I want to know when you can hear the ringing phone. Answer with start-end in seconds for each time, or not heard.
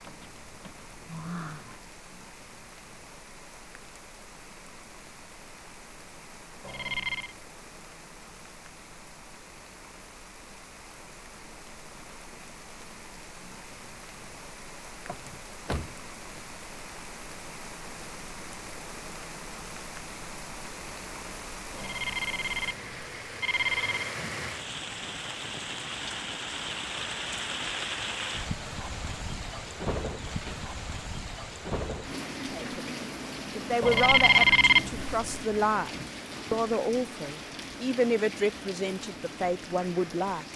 6.6-7.3, 21.7-24.1, 33.8-35.2.